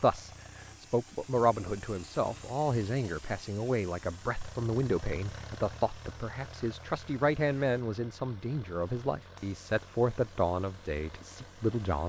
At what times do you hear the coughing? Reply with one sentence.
You can't hear the coughing here.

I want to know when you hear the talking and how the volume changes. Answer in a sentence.
You can hear the talking from 0.0 to 12.0 s, at a steady volume.